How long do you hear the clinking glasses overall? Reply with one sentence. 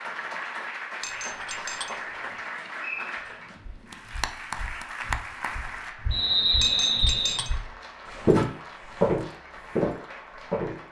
You can hear the clinking glasses for 2 seconds altogether.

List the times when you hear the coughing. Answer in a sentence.
You can't hear the coughing here.